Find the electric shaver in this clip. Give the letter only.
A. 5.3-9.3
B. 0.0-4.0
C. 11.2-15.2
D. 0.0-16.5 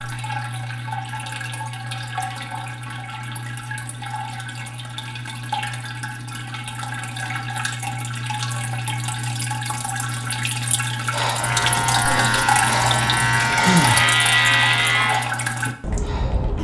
C.